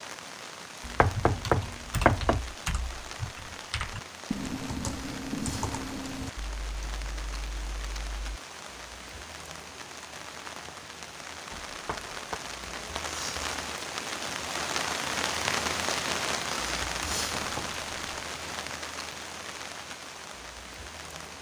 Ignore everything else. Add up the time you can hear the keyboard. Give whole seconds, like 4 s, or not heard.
7 s.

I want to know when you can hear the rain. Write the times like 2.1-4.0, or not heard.
0.0-21.3.